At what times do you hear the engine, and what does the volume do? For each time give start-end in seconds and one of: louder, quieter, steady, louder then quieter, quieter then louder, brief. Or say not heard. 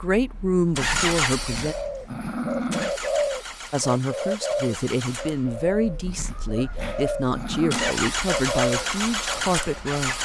0.1-10.1 quieter then louder.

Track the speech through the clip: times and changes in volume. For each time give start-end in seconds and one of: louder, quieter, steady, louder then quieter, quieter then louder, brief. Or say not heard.
0.0-1.8 brief
3.7-10.1 steady.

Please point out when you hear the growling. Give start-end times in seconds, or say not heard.
0.8-3.0, 5.8-8.0.